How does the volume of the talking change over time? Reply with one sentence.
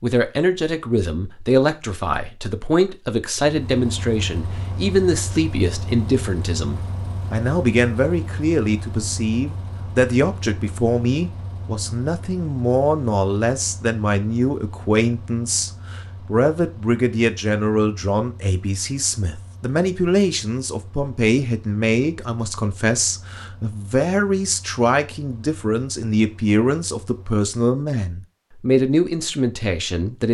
The loudness of the talking stays about the same.